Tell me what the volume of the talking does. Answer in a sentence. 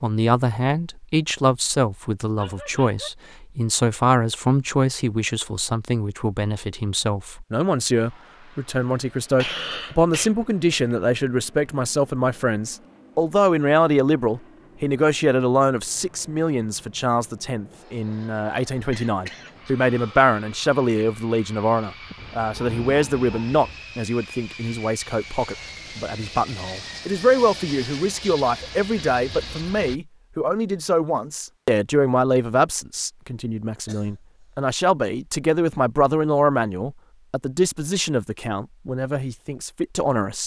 The loudness of the talking stays about the same.